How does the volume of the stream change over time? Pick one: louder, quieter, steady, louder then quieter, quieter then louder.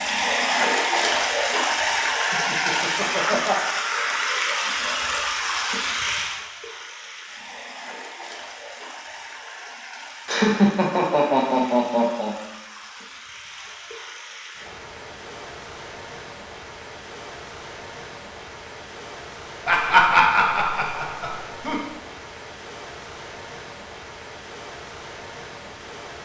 quieter.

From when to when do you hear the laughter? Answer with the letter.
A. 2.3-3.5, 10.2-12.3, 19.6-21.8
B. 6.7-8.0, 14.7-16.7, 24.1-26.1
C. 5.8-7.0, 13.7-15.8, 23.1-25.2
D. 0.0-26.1
A.